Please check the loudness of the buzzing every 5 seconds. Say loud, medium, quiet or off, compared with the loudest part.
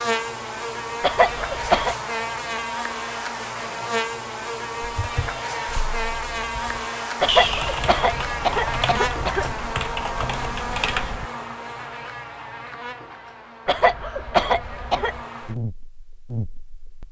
loud, loud, medium, medium.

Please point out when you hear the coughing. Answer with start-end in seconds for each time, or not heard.
1.0-1.9, 7.2-9.4, 13.7-15.2.